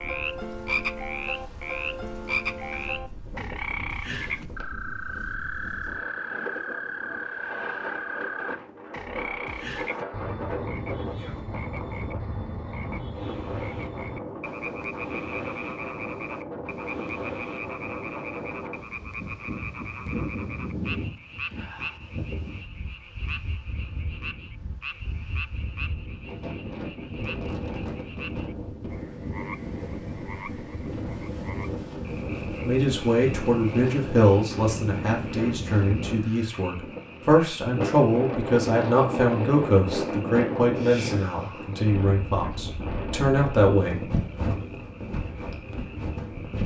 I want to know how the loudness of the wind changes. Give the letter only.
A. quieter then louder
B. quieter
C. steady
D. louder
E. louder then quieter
D.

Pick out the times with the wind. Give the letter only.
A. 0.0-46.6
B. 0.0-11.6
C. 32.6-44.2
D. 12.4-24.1
A.